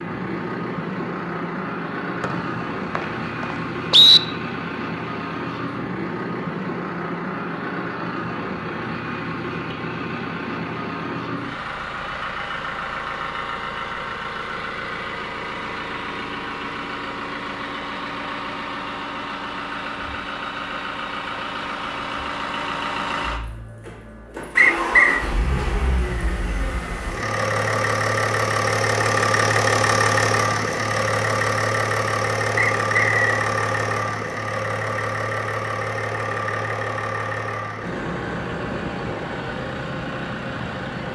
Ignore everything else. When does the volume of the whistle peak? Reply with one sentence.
The loudest moment of the whistle is at 4 seconds.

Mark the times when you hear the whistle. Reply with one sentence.
The whistle can be heard from 2.2 to 4.2 s, from 24.6 to 25.2 s and from 32.5 to 33.5 s.